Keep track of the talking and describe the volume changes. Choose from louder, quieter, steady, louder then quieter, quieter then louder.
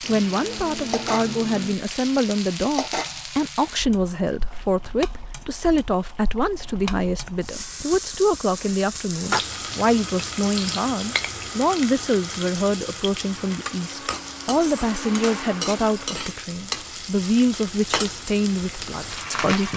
steady.